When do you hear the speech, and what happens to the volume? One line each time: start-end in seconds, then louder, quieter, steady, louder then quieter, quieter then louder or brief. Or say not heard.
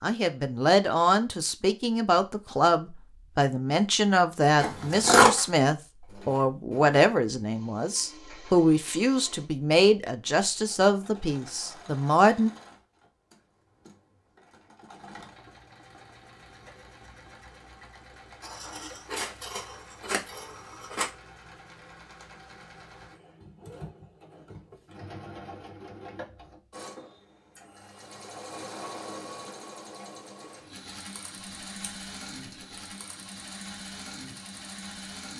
0.0-12.5 steady.